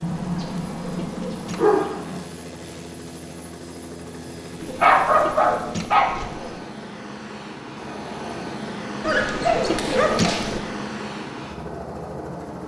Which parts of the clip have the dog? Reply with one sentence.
The dog can be heard from 0.0 to 2.2 s, from 4.8 to 6.2 s and from 9.0 to 10.6 s.